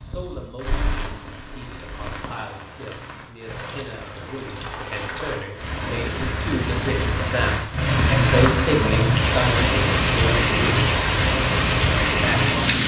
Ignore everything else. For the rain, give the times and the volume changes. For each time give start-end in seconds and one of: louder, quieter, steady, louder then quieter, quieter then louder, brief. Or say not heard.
0.0-12.8 louder.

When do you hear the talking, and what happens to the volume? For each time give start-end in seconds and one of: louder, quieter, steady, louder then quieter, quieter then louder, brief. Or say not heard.
0.1-10.8 louder
12.1-12.6 brief.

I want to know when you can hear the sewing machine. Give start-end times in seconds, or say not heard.
not heard.